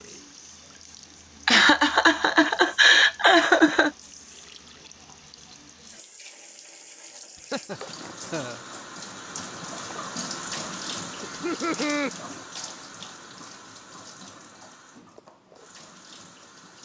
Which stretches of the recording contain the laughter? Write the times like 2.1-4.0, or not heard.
1.4-3.9, 7.5-8.6, 11.2-12.1.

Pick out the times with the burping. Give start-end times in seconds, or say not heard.
not heard.